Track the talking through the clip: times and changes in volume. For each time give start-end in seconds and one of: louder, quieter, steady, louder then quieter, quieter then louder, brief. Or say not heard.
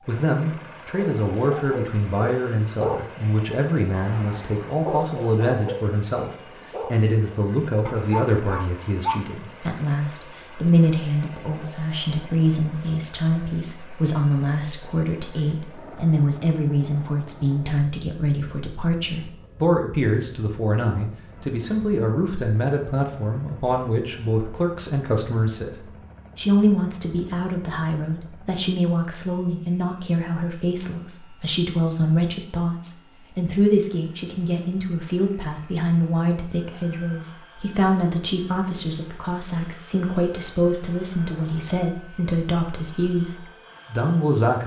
0.1-44.6 steady.